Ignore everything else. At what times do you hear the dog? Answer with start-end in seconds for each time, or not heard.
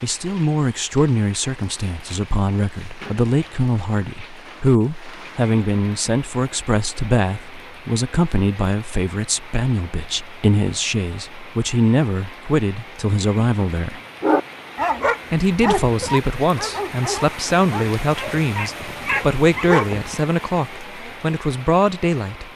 14.2-20.1.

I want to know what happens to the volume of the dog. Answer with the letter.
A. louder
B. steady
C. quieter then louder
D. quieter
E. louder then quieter
C.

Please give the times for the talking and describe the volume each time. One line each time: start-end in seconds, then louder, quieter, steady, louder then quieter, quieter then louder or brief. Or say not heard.
0.0-14.0 steady
15.3-22.5 steady.